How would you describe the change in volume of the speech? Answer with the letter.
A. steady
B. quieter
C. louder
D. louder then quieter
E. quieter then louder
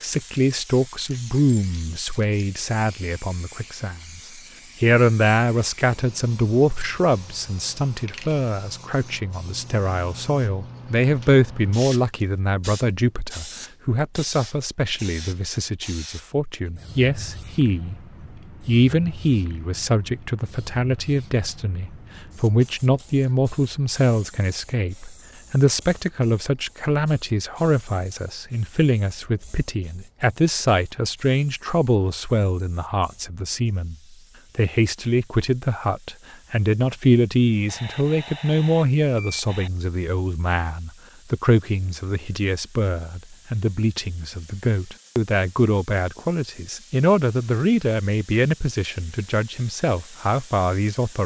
A.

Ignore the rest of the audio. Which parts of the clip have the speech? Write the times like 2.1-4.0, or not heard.
0.0-17.9, 18.6-34.0, 34.5-51.2.